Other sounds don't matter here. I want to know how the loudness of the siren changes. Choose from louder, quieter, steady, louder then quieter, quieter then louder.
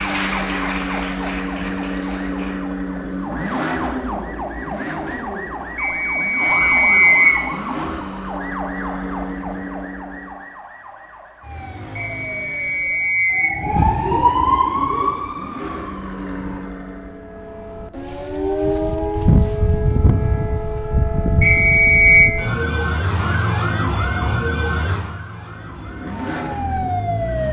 louder.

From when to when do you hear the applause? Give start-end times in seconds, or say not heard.
0.0-2.6.